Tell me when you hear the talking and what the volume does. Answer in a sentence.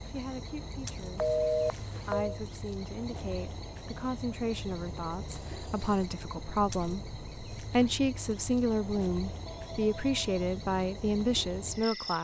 You can hear the talking from 0.1 to 12.1 s, getting louder.